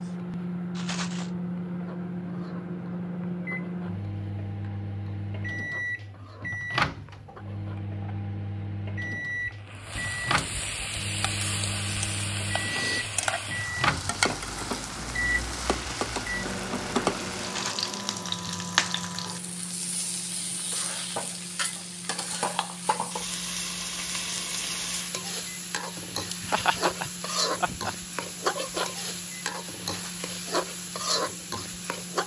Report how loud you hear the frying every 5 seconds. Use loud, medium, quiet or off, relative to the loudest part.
quiet, quiet, loud, loud, loud, loud, loud.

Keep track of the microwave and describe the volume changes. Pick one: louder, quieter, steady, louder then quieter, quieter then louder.
quieter.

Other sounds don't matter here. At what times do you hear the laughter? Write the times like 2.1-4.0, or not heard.
26.3-27.9.